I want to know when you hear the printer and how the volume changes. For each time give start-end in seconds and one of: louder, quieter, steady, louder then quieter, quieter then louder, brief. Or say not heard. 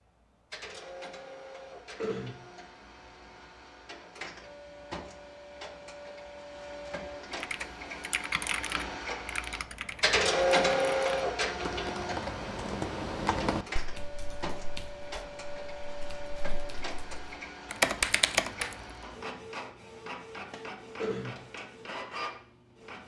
0.1-23.0 louder then quieter.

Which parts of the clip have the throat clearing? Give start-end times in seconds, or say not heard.
1.9-2.4, 20.9-21.4.